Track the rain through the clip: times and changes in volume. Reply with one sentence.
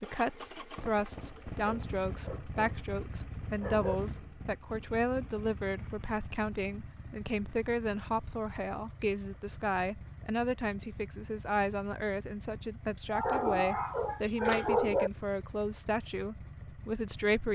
You can't hear the rain here.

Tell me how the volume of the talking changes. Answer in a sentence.
The volume of the talking stays about the same.